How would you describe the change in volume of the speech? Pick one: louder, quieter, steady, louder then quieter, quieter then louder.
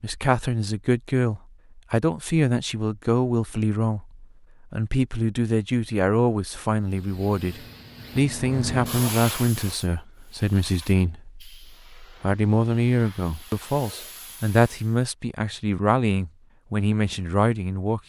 steady.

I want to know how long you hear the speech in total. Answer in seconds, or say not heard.
18 s.